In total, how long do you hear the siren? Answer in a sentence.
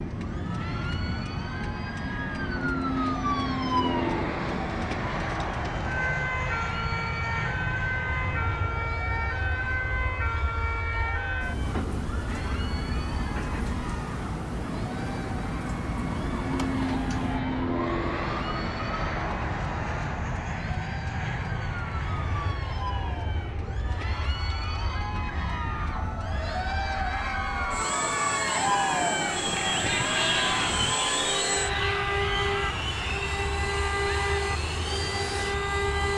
You can hear the siren for 36 seconds altogether.